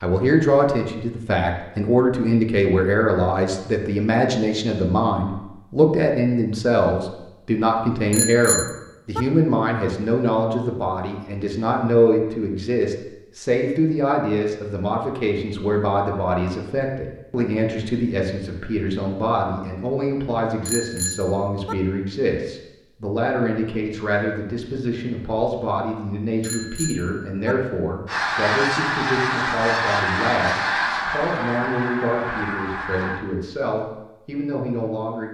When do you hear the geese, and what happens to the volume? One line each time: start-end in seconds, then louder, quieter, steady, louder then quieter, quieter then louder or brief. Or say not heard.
28.1-33.2 quieter.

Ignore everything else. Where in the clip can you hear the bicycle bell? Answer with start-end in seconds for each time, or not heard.
8.1-9.2, 20.6-21.8, 26.4-27.6.